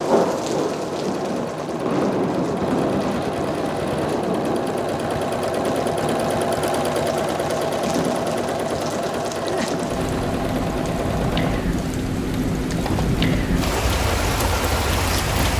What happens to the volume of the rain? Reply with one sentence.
The volume of the rain goes down, then up.